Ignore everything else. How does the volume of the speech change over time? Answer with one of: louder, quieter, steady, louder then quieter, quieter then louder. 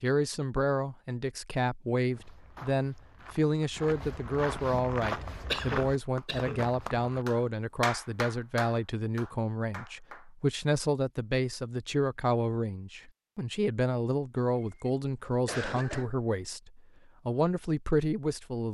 steady.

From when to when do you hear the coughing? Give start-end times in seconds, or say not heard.
5.5-6.6, 14.6-16.1.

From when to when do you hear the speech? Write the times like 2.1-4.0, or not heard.
0.0-18.6.